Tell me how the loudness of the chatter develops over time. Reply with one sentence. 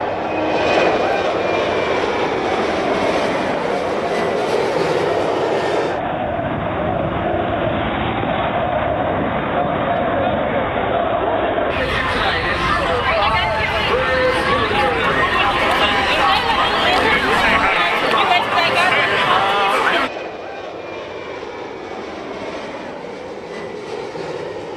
The loudness of the chatter goes up.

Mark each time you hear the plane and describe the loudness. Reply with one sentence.
You can hear the plane from 0.0 to 24.7 s, getting quieter.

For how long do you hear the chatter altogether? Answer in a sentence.
You can hear the chatter for 20 seconds altogether.